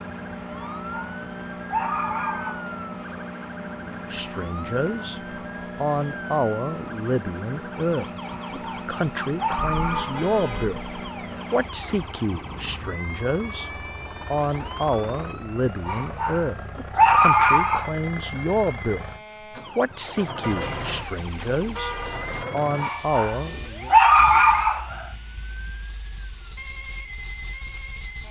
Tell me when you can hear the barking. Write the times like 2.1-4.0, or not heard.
0.6-2.7, 8.4-10.2, 15.8-17.9, 22.8-25.1.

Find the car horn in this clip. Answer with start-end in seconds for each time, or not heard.
9.7-10.8, 20.4-22.4.